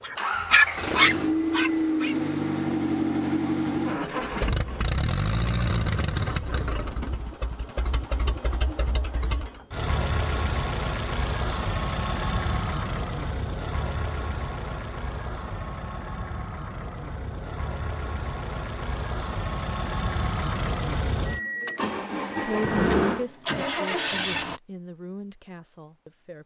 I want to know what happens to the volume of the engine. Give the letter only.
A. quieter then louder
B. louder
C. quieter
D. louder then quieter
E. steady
A.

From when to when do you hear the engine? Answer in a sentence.
The engine can be heard from 0.0 to 24.6 s.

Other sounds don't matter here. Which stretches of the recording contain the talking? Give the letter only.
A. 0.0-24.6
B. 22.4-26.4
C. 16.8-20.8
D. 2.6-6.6
B.